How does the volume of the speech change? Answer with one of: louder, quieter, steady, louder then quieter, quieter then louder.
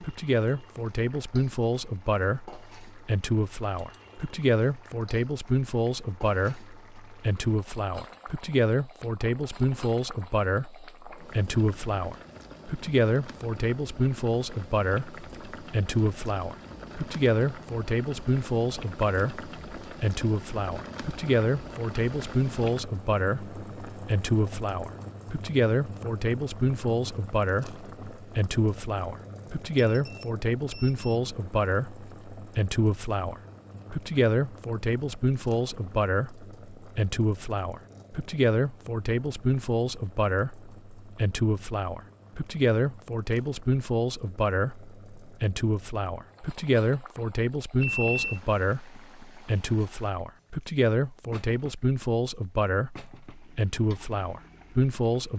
steady.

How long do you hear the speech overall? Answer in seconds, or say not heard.
55 s.